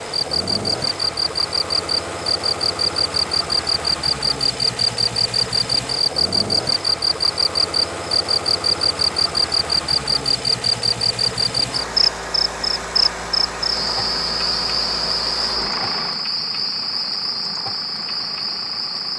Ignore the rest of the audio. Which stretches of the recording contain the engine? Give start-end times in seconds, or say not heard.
0.0-19.1.